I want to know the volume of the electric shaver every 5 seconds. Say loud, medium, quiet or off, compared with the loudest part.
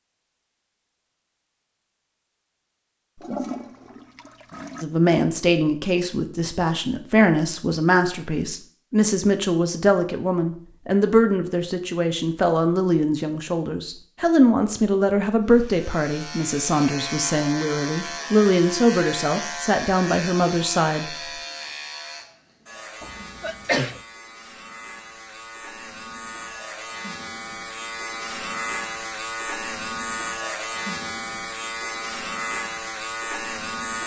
off, off, off, loud, medium, loud, loud.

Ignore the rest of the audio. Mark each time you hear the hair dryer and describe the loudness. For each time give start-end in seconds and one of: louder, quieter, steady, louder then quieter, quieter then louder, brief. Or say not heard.
not heard.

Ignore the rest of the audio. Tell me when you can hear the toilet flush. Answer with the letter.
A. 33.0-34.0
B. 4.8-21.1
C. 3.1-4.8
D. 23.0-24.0
C.